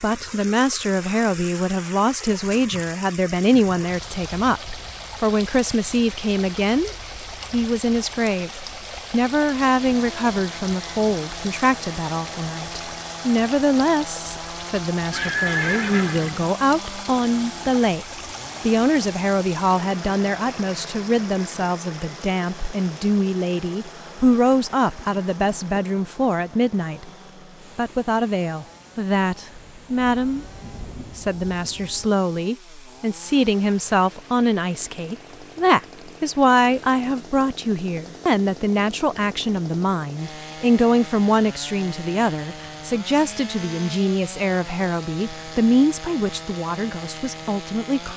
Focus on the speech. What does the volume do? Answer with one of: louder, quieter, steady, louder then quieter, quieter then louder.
steady.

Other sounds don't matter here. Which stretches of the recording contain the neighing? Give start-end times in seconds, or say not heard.
15.1-16.5.